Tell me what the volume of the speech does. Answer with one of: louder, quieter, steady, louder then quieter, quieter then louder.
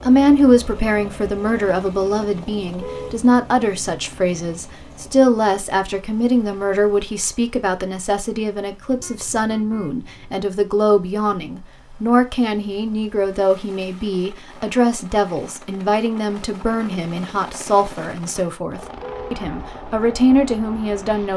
steady.